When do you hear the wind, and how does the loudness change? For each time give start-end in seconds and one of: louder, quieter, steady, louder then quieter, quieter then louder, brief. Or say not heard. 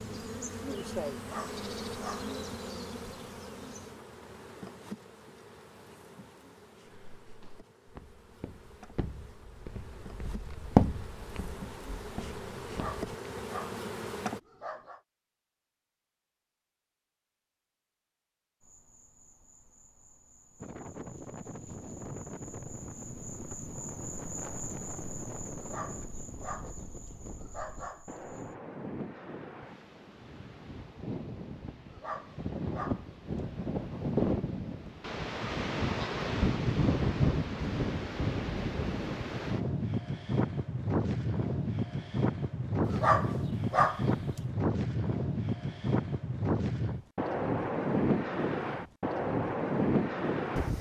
20.6-50.7 louder.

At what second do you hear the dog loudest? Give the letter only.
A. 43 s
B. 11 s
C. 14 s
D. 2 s
A.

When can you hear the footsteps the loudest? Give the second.
11 s.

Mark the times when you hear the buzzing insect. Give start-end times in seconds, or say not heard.
0.0-14.4, 18.6-28.6.